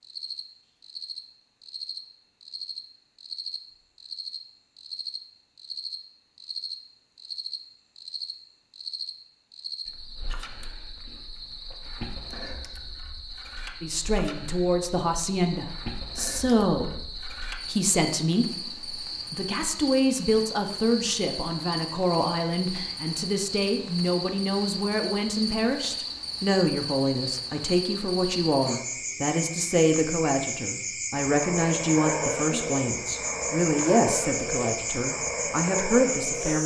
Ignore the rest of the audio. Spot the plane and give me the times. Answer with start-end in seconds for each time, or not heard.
31.2-36.6.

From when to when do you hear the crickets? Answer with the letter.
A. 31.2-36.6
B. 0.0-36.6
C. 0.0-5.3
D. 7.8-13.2
B.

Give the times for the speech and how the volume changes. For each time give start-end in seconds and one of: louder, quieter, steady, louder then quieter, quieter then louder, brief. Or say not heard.
13.8-36.6 steady.